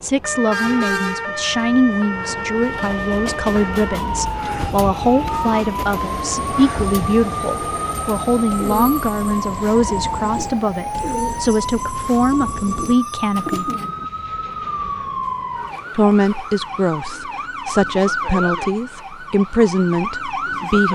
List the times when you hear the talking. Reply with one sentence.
The talking can be heard from 0.0 to 13.7 s and from 15.9 to 20.8 s.